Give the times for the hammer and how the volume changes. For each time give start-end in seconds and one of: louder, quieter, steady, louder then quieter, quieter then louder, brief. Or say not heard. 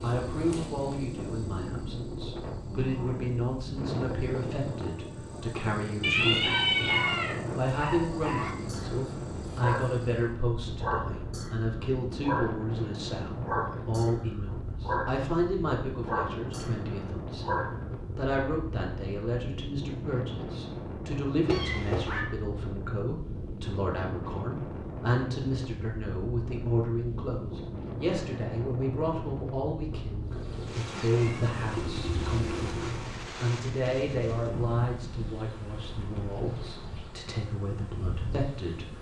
not heard.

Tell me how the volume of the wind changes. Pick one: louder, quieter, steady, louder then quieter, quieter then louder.
steady.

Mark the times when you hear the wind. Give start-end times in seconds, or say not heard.
0.0-38.9.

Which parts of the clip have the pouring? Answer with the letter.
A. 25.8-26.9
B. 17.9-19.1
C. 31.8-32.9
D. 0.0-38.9
C.